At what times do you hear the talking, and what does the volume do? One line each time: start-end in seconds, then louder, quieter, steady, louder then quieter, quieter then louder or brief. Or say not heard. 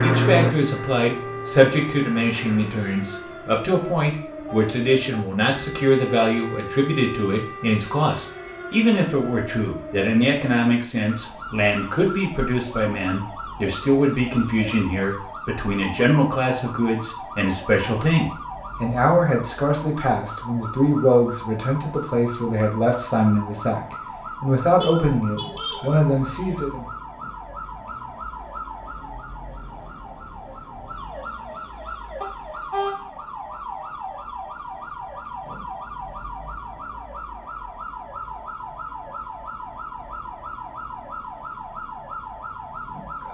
0.0-26.9 steady.